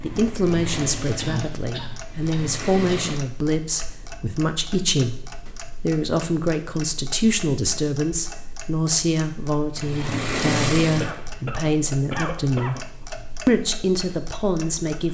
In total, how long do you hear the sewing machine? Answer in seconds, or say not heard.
5 s.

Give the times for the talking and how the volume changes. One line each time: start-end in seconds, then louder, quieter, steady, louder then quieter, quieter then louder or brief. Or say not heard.
0.0-12.8 steady
13.4-15.0 brief.